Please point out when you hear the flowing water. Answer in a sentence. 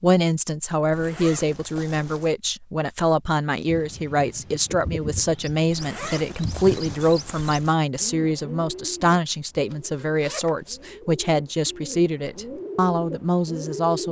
The flowing water can't be heard in this clip.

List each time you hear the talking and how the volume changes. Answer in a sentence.
The talking can be heard from 0.0 to 14.0 s, at a steady volume.